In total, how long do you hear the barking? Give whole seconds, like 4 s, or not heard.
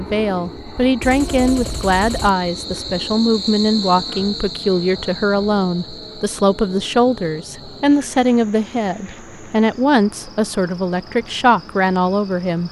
not heard.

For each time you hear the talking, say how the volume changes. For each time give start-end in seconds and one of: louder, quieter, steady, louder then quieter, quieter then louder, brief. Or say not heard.
0.0-12.6 steady.